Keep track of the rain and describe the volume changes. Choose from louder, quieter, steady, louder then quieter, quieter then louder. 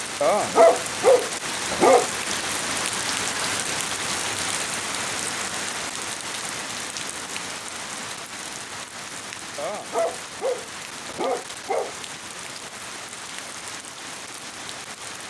quieter.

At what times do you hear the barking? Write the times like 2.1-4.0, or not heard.
0.2-2.1, 9.6-11.9.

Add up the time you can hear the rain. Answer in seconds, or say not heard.
15 s.